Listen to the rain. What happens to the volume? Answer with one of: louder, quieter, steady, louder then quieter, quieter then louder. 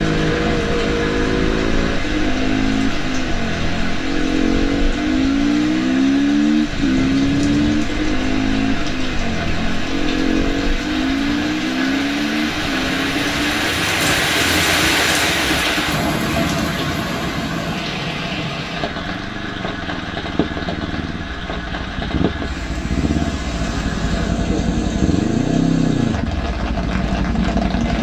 louder then quieter.